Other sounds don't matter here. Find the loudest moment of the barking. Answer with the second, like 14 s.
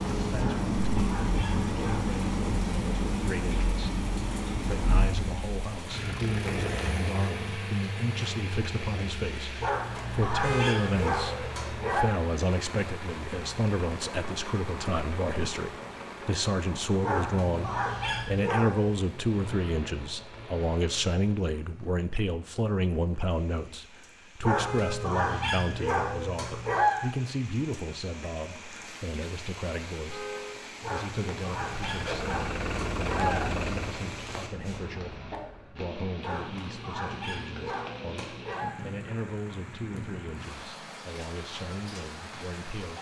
27 s.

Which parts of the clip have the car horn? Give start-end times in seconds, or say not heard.
10.4-10.9, 24.6-25.2, 30.1-30.6.